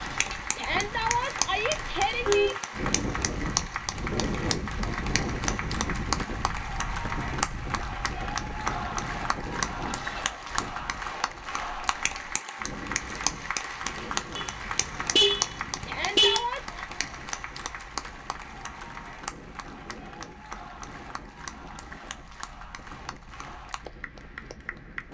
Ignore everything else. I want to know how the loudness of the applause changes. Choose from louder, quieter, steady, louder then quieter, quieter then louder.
quieter.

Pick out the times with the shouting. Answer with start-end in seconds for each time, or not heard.
0.6-2.5, 15.8-16.8.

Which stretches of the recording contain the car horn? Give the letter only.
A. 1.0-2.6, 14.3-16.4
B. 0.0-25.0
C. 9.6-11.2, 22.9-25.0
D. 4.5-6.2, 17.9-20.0
A.